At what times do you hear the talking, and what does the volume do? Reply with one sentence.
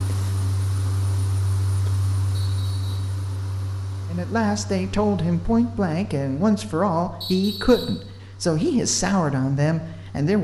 You can hear the talking from 4.1 to 10.3 s, at a steady volume.